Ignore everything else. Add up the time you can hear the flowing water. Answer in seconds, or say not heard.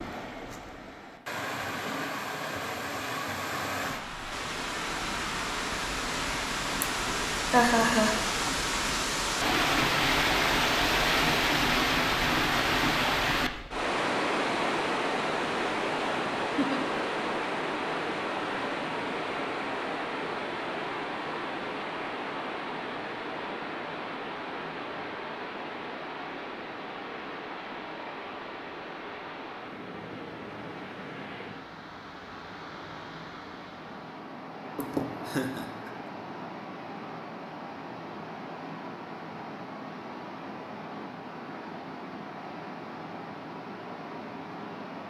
45 s.